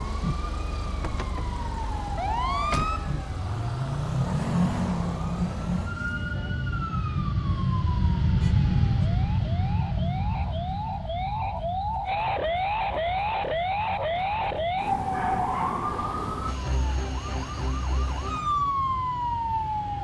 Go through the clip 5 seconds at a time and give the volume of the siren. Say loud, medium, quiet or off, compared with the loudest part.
loud, medium, loud, loud.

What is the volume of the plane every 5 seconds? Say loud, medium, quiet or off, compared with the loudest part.
quiet, loud, medium, quiet.